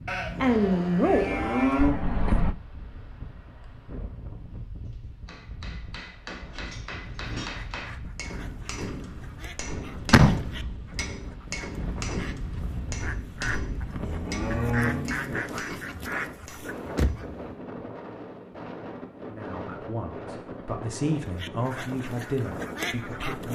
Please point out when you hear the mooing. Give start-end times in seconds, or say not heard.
0.1-1.9, 14.0-15.4.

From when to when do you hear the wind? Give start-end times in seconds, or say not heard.
0.0-23.5.